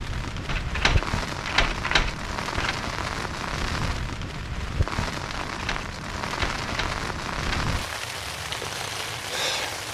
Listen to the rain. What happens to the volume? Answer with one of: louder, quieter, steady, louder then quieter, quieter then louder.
steady.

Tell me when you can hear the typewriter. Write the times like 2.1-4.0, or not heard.
0.5-2.8, 5.5-7.8.